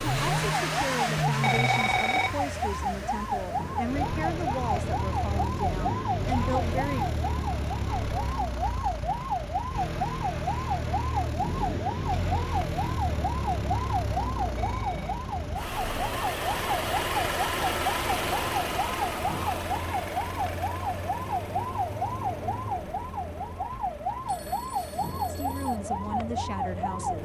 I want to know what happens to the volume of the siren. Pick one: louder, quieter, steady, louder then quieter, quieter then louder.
steady.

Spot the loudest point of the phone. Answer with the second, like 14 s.
2 s.